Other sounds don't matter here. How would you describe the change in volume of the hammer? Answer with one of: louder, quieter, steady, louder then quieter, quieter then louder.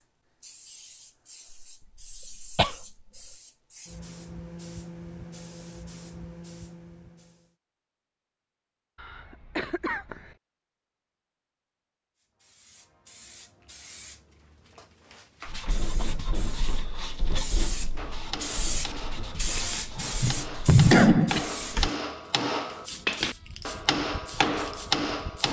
louder.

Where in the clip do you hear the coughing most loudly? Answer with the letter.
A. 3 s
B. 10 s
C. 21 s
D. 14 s
C.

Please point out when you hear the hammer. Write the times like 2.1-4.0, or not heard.
17.9-25.4.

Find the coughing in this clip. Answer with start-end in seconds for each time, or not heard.
2.1-2.8, 8.9-10.3, 19.9-21.4.